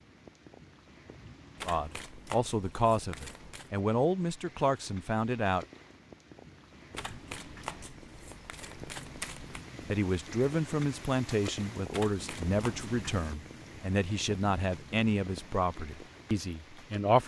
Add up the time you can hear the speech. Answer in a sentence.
The speech can be heard for 11 seconds in total.